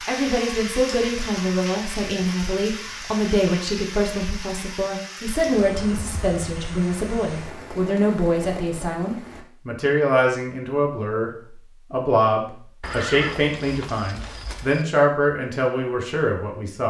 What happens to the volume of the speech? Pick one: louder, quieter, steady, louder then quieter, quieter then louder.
steady.